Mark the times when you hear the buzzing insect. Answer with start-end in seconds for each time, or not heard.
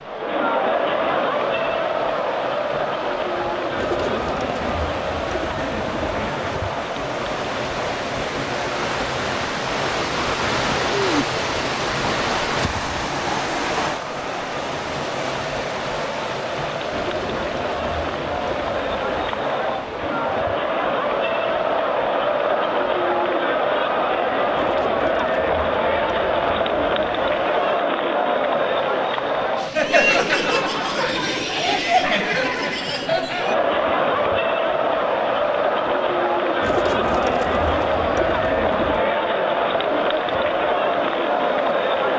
not heard.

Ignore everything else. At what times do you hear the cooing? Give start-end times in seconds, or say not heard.
3.8-6.3, 16.9-19.4, 24.6-27.5, 36.6-39.1.